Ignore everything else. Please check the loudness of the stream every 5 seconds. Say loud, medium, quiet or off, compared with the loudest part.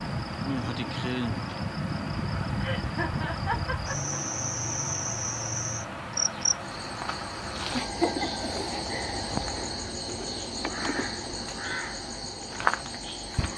loud, loud, medium.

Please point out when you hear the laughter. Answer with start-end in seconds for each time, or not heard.
2.6-4.2, 7.7-9.2.